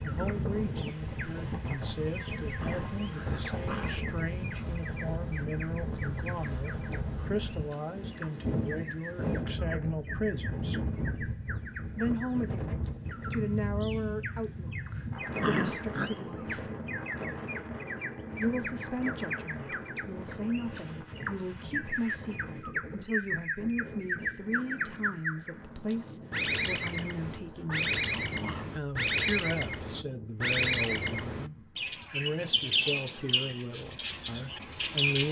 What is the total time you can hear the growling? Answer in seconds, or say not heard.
4 s.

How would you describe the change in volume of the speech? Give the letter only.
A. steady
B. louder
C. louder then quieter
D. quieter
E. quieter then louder
A.